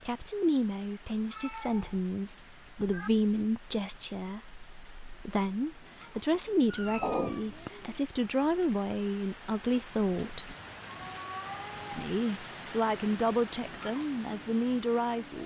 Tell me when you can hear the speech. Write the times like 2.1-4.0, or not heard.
0.1-10.6, 11.9-15.4.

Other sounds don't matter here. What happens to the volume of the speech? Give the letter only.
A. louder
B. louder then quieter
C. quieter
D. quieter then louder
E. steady
E.